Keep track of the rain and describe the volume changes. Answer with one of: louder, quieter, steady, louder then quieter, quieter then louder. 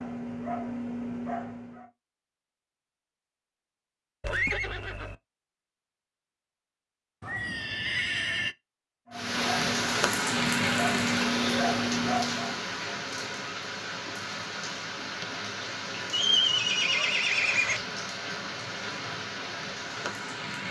quieter.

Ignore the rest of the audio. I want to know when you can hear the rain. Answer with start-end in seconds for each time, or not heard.
9.1-20.6.